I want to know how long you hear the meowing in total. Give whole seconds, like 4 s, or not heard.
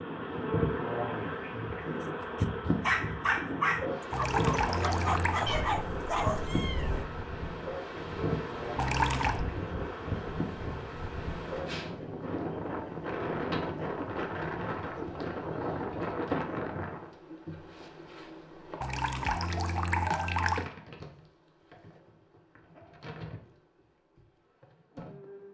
2 s.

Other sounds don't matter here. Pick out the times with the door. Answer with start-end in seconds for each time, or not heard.
not heard.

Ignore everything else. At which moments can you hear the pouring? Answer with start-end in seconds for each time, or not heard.
4.1-5.5, 8.8-9.4, 18.8-20.7.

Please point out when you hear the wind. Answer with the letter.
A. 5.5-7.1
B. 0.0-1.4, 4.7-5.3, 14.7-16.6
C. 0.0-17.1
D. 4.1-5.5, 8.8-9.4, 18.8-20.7
C.